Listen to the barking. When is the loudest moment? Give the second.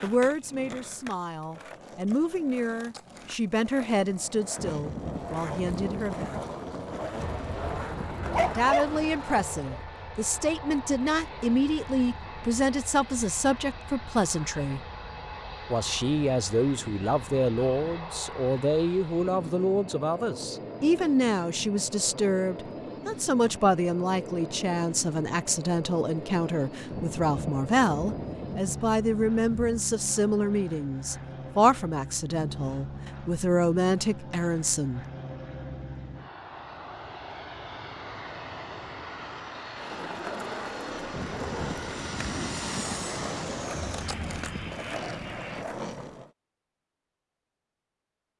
9 s.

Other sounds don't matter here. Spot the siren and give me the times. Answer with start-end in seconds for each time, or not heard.
not heard.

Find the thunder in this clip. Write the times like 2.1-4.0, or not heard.
4.5-8.6, 26.9-29.8, 41.1-44.8.